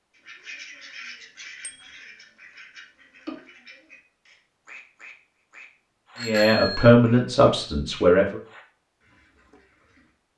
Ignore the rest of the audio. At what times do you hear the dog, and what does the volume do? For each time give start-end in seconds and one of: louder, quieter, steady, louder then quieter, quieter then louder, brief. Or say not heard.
not heard.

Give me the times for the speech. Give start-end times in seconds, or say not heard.
6.2-8.4.